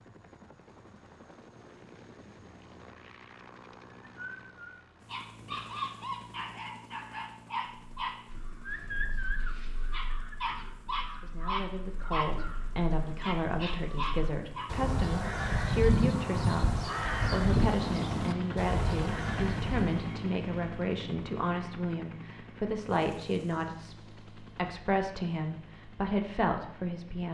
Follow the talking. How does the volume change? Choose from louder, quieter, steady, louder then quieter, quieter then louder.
steady.